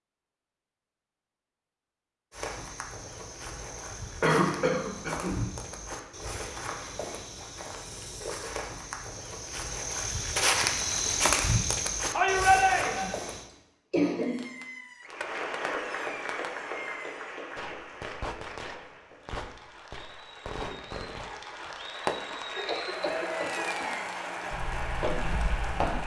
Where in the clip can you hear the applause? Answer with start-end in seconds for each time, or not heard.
15.0-26.0.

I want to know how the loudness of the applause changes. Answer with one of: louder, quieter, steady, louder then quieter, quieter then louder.
quieter then louder.